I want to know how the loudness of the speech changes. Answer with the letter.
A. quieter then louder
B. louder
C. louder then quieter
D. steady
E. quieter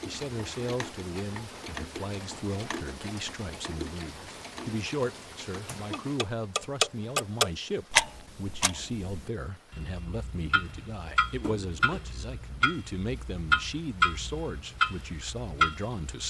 D.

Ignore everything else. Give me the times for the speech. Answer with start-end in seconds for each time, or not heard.
0.1-16.2.